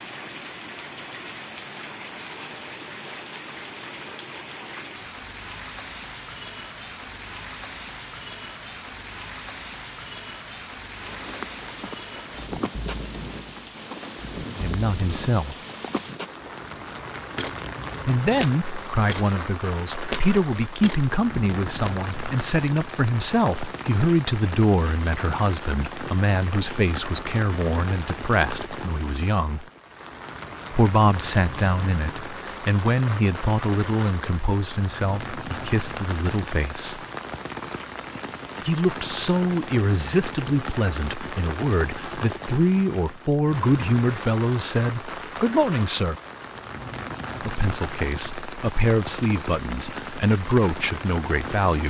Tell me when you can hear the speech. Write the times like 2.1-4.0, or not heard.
14.6-15.6, 18.1-29.6, 30.7-37.0, 38.6-46.2, 47.4-51.8.